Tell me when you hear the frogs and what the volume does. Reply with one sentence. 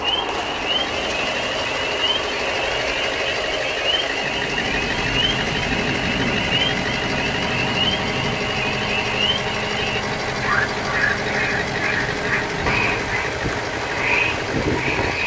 You can hear the frogs from 0.0 to 15.2 s, at a steady volume.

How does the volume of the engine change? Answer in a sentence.
The volume of the engine stays about the same.